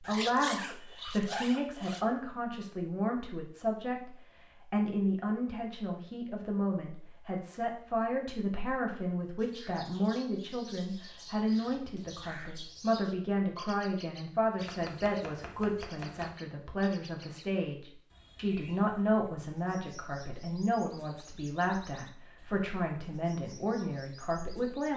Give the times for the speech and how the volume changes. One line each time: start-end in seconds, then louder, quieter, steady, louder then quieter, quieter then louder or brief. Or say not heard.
0.0-24.9 steady.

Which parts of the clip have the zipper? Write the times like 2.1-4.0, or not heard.
0.0-2.0.